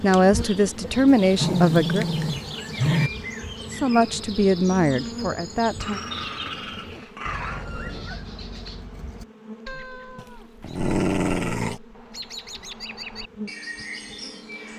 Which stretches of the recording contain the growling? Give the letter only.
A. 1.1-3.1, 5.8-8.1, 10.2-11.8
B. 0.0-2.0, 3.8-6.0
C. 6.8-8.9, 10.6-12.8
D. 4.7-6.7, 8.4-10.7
A.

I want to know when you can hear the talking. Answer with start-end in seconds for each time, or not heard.
0.0-2.0, 3.8-6.0.